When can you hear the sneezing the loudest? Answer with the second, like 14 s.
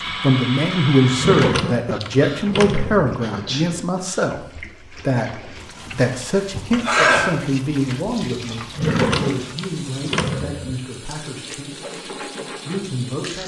7 s.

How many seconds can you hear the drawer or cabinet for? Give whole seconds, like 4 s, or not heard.
4 s.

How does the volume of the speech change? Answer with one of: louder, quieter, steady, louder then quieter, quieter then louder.
quieter.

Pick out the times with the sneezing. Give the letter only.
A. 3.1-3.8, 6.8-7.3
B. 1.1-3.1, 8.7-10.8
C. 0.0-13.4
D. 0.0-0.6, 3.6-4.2
A.